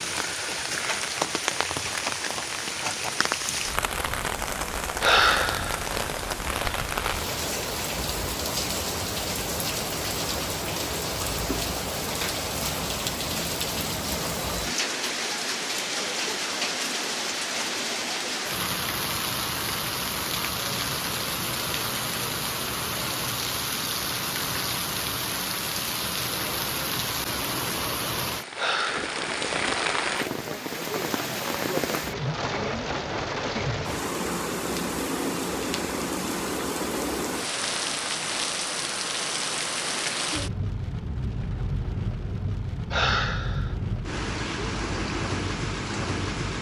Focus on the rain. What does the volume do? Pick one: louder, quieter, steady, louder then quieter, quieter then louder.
steady.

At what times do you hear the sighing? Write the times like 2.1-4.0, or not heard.
5.0-5.8, 28.6-29.1, 42.9-43.8.